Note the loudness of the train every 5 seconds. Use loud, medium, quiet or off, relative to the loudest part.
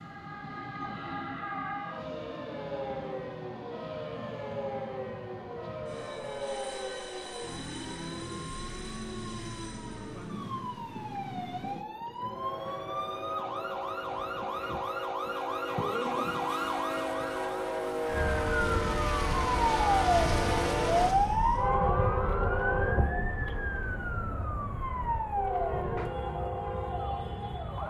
quiet, quiet, medium, loud, loud, medium.